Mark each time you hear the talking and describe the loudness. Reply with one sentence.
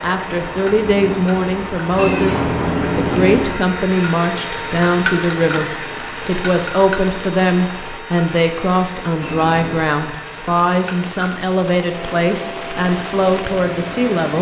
You can hear the talking from 0.0 to 14.3 s, at a steady volume.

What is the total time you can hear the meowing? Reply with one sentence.
You can hear the meowing for 2 seconds altogether.